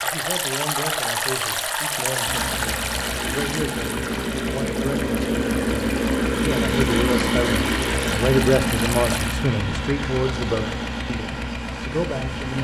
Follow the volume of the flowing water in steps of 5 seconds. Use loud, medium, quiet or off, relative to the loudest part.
loud, medium, off.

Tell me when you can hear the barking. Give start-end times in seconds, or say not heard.
not heard.